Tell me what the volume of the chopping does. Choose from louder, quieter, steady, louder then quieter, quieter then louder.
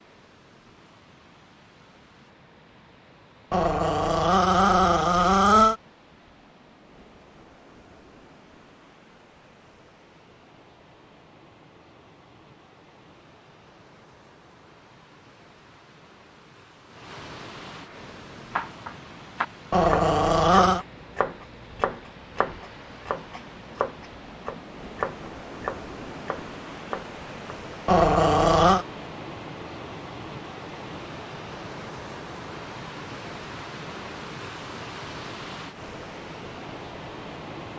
quieter.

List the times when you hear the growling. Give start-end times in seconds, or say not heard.
3.5-5.8, 19.7-20.9, 27.9-28.9.